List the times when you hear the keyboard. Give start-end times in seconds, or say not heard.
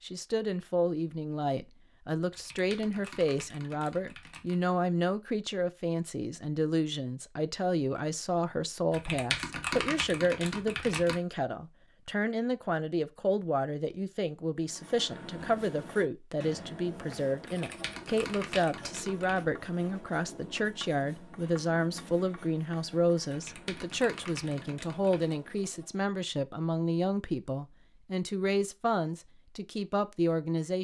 2.3-4.7, 8.9-11.2, 17.4-19.4, 23.2-25.4.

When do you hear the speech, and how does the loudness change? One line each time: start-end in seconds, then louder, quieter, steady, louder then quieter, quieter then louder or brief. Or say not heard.
0.0-30.7 steady.